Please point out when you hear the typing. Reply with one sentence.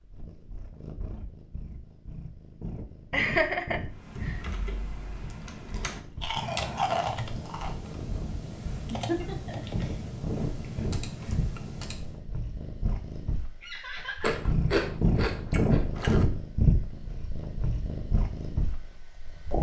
The typing can be heard from 3.9 to 12.2 s.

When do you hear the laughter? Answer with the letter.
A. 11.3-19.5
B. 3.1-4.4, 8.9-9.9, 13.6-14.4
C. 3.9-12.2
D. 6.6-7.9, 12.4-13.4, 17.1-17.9
B.